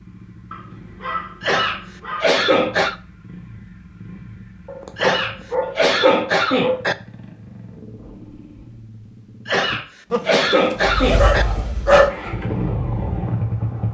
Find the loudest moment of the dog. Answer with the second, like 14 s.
12 s.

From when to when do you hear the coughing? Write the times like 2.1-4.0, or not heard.
1.4-3.0, 5.0-7.0, 9.4-11.4.